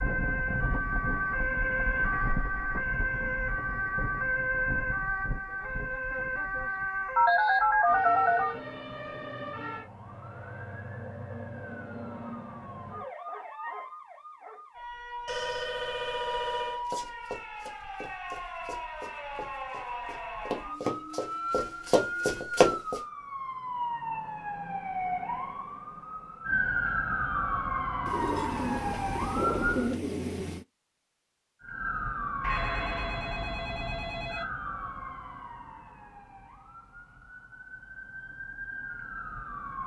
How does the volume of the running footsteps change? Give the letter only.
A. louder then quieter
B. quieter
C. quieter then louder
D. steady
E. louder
C.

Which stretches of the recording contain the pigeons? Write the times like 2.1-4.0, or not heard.
28.1-30.6.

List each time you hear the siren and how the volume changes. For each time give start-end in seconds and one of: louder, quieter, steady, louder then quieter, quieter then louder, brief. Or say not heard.
0.0-29.9 quieter then louder
31.6-39.8 quieter then louder.